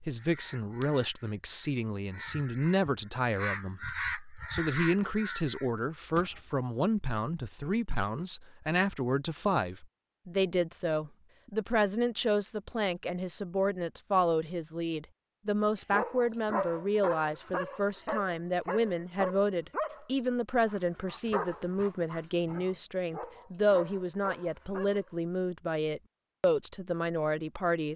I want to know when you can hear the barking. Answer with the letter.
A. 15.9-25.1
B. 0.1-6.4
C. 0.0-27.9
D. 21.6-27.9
A.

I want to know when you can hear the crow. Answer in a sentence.
The crow can be heard from 0.1 to 6.4 s.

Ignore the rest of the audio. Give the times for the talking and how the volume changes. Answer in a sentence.
You can hear the talking from 0.0 to 27.9 s, at a steady volume.